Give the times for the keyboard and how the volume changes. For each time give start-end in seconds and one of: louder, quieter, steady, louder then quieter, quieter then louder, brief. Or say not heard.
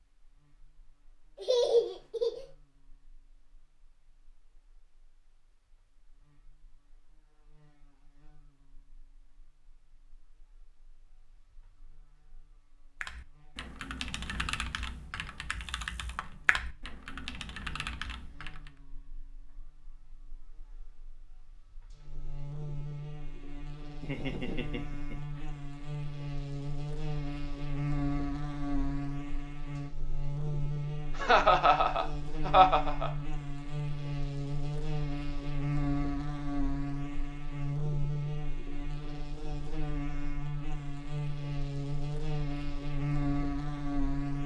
13.0-18.7 steady.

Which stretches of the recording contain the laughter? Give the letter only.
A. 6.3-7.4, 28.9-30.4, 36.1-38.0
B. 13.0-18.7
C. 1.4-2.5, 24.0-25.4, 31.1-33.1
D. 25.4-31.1
C.